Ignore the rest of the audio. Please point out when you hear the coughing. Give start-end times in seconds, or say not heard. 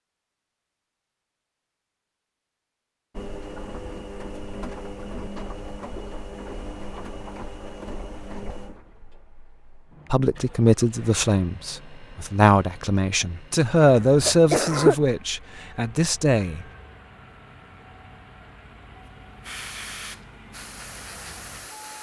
13.8-15.1.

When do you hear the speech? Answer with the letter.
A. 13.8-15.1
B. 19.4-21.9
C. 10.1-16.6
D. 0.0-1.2
C.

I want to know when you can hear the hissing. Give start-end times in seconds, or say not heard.
19.4-21.9.